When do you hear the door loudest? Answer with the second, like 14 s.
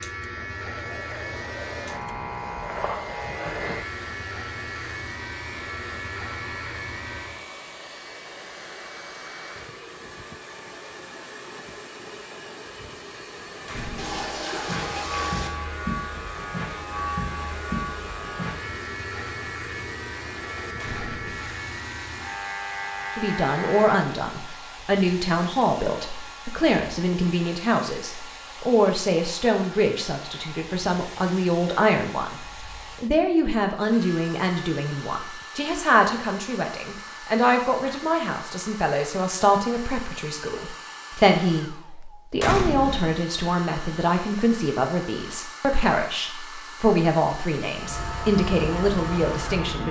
43 s.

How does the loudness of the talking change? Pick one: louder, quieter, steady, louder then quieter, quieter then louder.
steady.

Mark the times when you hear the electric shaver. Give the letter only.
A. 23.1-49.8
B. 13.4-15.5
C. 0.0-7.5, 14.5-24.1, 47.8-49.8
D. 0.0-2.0
C.